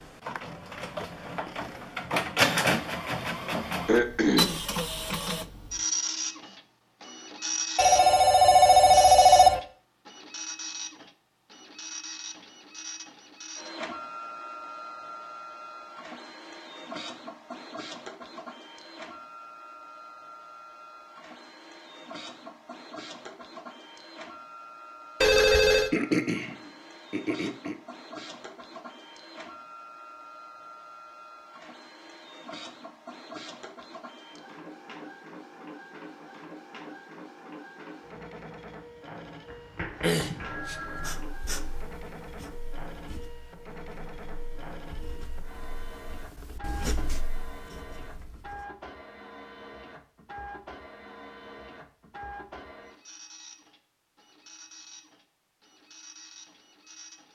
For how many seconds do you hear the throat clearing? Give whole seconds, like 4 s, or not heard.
3 s.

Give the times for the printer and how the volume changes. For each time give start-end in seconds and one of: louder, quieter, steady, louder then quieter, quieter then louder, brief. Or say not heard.
0.0-57.3 quieter.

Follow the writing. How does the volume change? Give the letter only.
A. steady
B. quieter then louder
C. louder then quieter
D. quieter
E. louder
B.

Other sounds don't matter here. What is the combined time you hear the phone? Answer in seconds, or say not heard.
4 s.